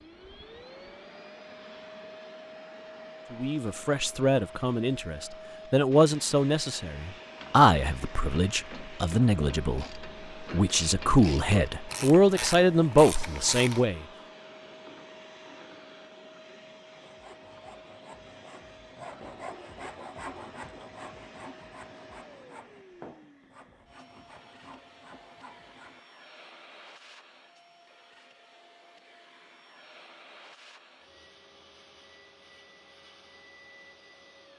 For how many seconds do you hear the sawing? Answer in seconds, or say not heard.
9 s.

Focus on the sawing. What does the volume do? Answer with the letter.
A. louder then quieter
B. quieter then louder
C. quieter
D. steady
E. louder
A.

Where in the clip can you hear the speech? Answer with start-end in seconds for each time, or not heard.
3.3-14.1.